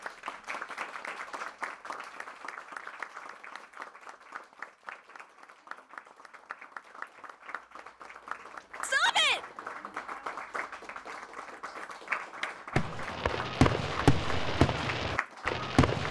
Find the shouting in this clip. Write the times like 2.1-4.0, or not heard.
8.8-9.4.